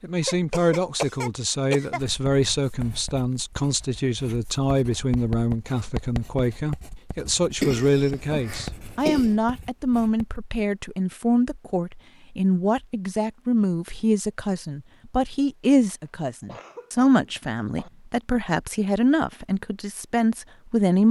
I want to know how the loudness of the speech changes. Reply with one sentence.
The volume of the speech stays about the same.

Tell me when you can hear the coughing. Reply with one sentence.
You can hear the coughing from 0.2 to 2.0 s, from 7.6 to 9.3 s and from 16.1 to 17.9 s.